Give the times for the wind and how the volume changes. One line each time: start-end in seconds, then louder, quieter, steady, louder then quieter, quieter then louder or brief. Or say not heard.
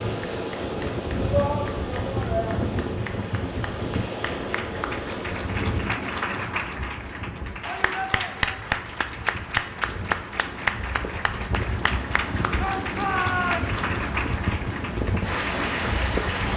0.0-16.5 quieter then louder.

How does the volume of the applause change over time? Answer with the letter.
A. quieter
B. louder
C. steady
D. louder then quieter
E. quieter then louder
B.